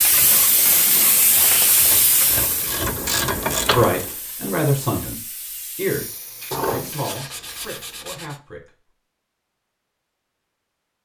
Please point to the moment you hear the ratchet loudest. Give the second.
4 s.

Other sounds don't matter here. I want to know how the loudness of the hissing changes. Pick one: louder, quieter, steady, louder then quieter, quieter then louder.
quieter.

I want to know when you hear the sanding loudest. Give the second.
7 s.